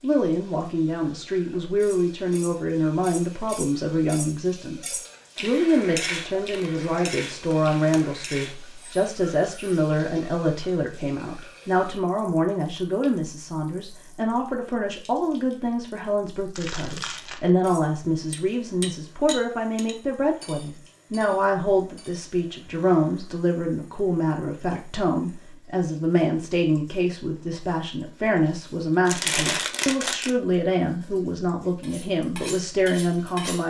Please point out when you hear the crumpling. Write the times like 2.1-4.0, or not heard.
6.5-8.1, 16.6-17.5, 29.1-30.3.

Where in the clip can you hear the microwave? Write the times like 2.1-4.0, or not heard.
not heard.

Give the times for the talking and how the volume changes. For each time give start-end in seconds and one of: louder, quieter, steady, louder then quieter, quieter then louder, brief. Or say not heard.
0.0-33.6 steady.